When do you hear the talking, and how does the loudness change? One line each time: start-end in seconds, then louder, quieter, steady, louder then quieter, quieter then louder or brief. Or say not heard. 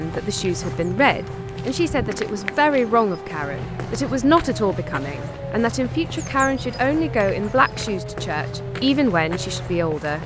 0.0-10.2 steady.